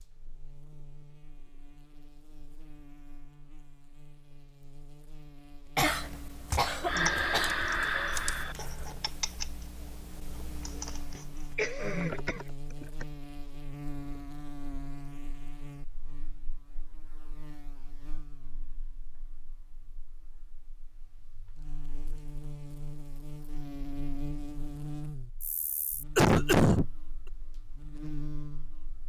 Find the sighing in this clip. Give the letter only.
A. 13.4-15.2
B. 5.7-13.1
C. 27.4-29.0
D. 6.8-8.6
D.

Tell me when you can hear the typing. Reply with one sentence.
The typing can be heard from 5.7 to 13.1 s.